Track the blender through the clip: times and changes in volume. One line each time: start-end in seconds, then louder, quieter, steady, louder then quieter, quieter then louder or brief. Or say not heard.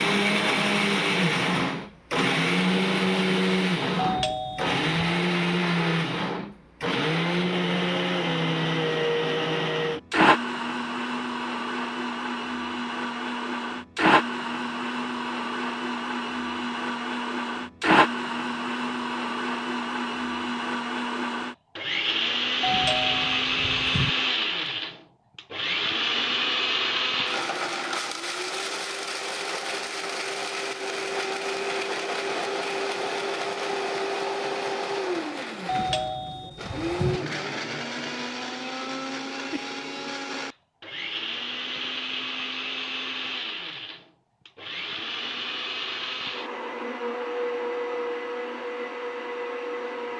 0.0-50.1 quieter.